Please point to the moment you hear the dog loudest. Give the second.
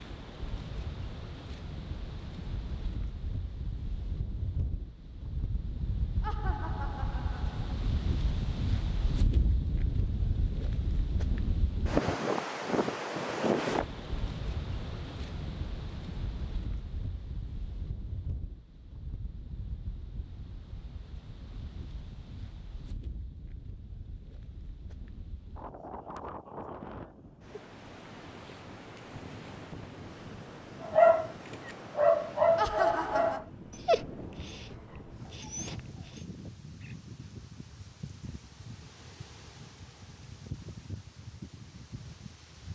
31 s.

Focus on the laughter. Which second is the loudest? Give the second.
33 s.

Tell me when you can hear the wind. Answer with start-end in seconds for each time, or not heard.
0.0-42.6.